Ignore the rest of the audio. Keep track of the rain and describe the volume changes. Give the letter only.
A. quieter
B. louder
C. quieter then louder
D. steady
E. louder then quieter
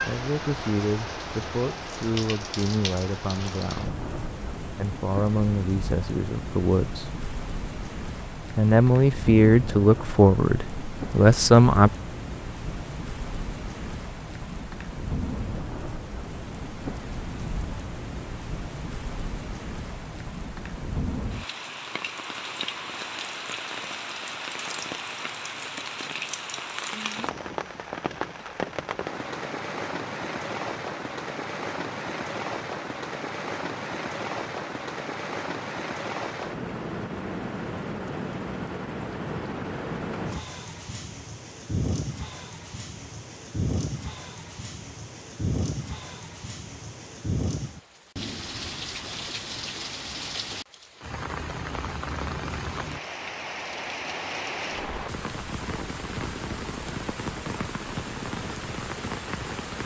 D.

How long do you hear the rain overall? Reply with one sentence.
The rain can be heard for 60 seconds in total.